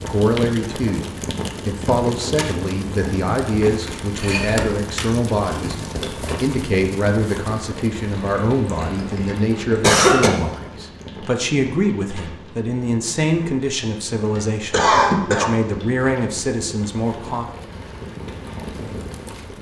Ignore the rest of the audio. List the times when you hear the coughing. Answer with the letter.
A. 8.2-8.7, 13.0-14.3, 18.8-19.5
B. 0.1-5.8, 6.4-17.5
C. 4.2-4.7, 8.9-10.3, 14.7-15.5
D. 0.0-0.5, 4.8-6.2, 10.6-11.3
C.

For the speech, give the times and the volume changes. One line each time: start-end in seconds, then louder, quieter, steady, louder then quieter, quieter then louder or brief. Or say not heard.
0.1-5.8 steady
6.4-17.5 steady.